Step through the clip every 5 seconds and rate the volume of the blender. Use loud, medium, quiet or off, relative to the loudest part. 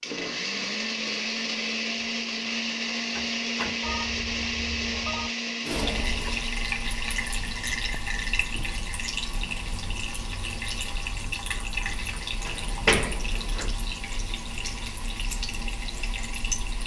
loud, medium, quiet, quiet.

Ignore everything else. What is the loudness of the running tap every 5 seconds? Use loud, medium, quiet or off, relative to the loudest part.
off, loud, loud, loud.